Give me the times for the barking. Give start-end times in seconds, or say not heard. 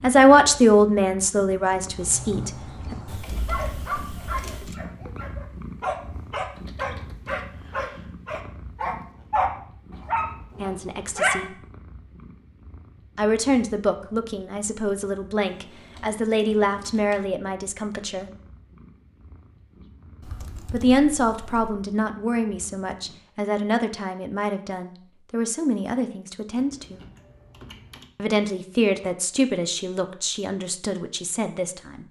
1.9-11.3.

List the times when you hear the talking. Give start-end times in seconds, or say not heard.
0.0-3.0, 10.6-11.6, 13.2-18.3, 20.7-27.0, 28.1-32.0.